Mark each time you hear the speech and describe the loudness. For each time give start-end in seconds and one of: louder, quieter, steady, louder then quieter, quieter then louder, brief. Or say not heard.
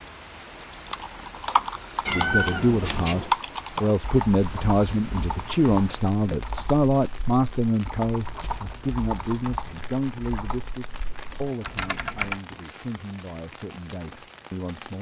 2.1-14.9 quieter.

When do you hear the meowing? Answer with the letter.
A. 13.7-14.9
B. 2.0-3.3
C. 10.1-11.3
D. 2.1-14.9
B.